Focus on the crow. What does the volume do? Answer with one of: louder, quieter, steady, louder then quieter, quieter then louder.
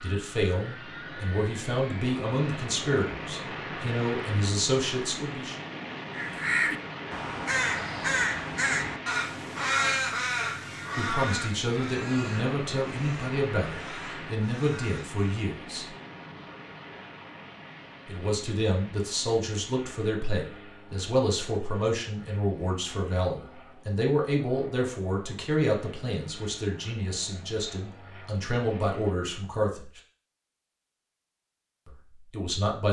quieter.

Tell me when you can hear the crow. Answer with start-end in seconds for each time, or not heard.
6.1-15.4.